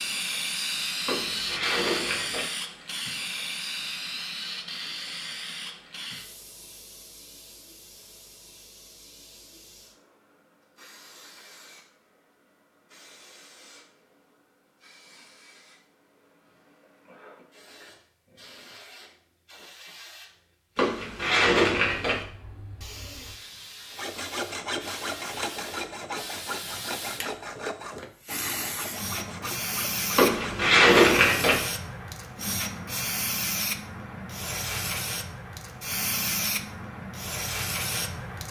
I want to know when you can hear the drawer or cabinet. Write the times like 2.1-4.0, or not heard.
1.1-2.5, 20.8-22.2, 30.1-31.6.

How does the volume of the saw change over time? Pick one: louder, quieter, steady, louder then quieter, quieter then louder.
quieter.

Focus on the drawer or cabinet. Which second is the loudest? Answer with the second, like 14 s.
31 s.